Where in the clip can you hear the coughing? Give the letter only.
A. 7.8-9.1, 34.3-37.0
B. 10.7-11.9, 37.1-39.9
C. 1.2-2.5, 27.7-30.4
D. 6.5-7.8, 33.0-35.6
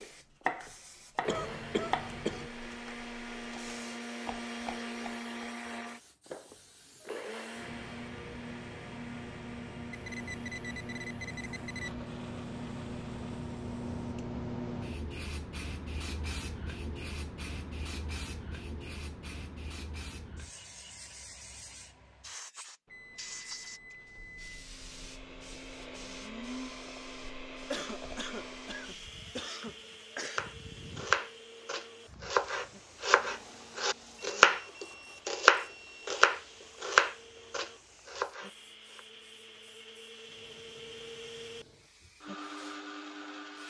C.